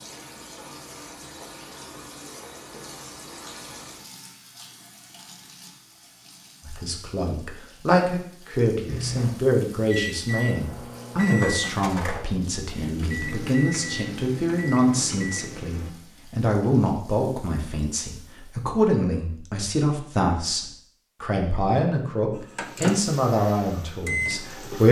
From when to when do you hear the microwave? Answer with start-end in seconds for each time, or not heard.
8.8-15.9, 22.3-24.8.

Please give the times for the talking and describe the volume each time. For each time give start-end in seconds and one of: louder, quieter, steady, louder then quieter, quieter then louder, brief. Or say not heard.
6.7-24.8 steady.